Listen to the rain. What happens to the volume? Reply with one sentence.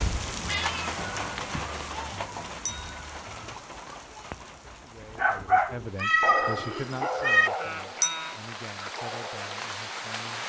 The volume of the rain goes down, then up.